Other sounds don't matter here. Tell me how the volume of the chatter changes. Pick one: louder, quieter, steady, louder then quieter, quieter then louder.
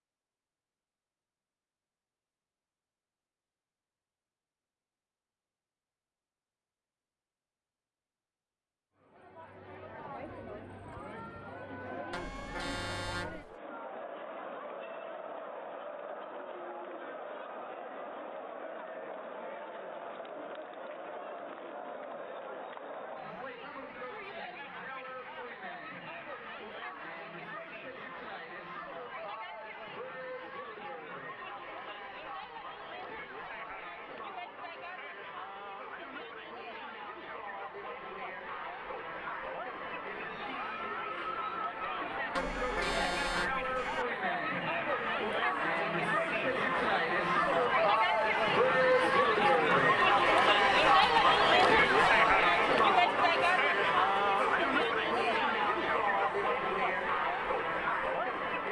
louder.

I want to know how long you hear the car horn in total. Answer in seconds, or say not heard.
3 s.